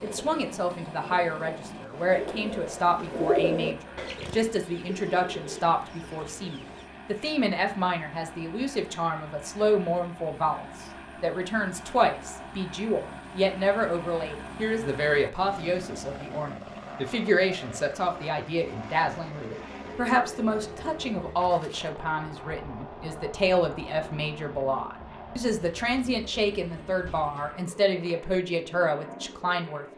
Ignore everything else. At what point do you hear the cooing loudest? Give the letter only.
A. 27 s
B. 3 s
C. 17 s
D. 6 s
B.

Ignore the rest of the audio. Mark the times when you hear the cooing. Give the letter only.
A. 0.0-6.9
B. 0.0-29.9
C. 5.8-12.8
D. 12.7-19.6
A.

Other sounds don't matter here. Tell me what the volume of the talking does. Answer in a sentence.
The loudness of the talking stays about the same.